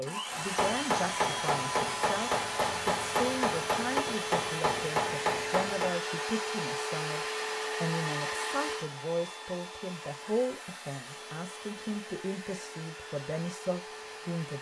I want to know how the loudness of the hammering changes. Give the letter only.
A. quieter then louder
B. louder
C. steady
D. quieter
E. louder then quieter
C.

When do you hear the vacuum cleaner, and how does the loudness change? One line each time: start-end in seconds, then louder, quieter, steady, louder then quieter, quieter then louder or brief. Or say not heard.
0.0-14.5 quieter.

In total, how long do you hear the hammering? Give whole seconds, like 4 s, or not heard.
6 s.